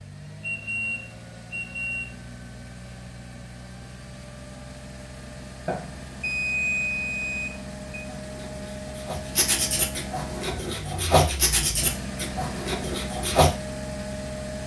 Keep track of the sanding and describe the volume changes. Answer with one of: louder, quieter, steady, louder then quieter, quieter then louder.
louder then quieter.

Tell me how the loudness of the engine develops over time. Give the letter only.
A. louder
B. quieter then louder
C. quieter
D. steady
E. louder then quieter
A.